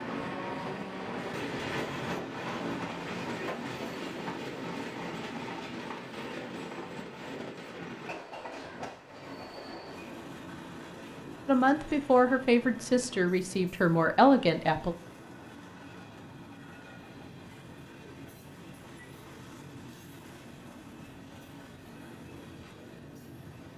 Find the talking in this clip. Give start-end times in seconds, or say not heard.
11.4-14.9.